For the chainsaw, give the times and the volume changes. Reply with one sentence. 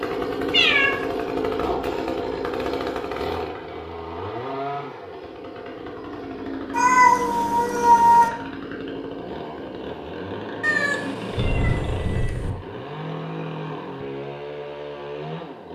You can hear the chainsaw from 0.0 to 15.7 s, getting quieter.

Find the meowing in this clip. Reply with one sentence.
You can hear the meowing from 0.5 to 1.0 s, from 6.7 to 8.3 s and from 10.6 to 12.5 s.